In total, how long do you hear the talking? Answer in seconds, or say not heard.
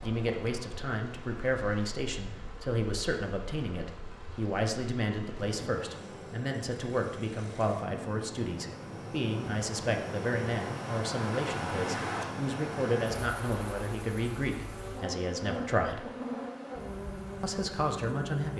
17 s.